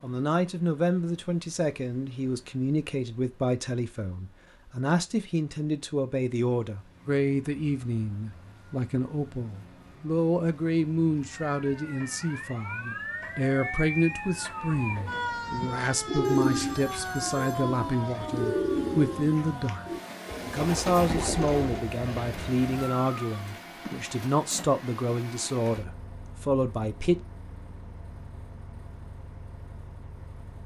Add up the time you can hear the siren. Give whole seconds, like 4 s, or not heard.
17 s.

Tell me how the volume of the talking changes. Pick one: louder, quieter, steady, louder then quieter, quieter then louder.
steady.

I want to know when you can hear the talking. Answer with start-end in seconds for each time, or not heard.
0.0-19.9, 20.4-27.2.